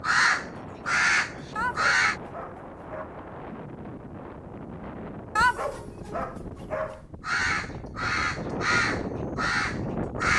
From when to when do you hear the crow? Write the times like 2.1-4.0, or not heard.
0.0-2.1, 7.2-10.3.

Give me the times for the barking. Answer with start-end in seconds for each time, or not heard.
1.6-3.0, 5.3-7.0.